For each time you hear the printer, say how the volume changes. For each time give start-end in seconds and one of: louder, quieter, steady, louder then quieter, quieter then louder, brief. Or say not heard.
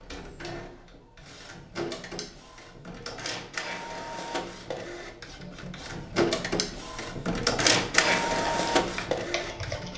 0.0-9.9 louder.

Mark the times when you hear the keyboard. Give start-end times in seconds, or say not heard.
8.4-9.9.